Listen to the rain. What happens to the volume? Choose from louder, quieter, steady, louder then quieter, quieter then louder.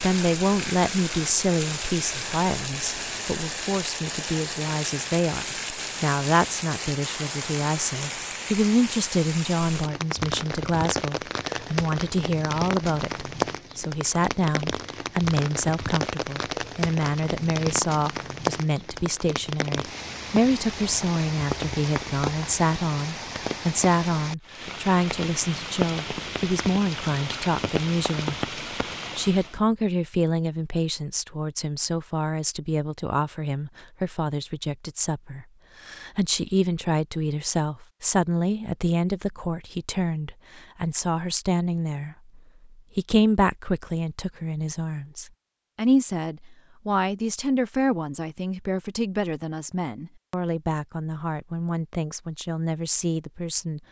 steady.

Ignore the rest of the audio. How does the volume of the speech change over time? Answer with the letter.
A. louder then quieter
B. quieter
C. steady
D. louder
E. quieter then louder
C.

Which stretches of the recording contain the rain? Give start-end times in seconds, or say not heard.
0.0-29.6.